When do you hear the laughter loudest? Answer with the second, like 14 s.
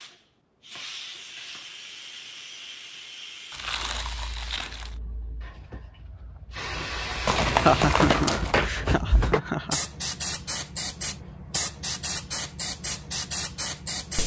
8 s.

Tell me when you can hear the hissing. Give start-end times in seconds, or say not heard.
0.0-14.2.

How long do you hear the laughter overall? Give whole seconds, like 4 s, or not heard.
2 s.